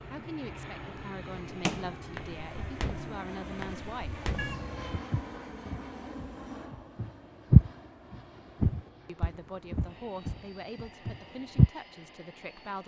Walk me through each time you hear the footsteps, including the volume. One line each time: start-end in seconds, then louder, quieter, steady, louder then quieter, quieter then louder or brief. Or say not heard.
1.5-11.7 louder then quieter.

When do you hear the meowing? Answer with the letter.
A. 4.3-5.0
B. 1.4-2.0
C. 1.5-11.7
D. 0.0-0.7
A.